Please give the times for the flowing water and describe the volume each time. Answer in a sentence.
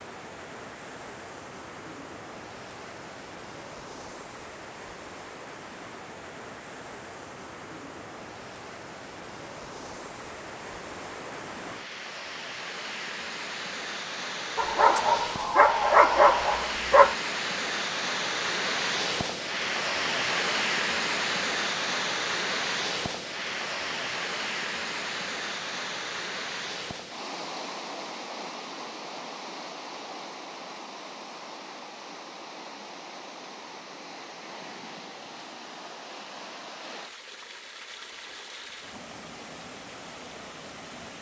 You can hear the flowing water from 0.0 to 41.1 s, getting louder then quieter.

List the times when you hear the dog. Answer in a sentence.
The dog can be heard from 14.6 to 17.1 s.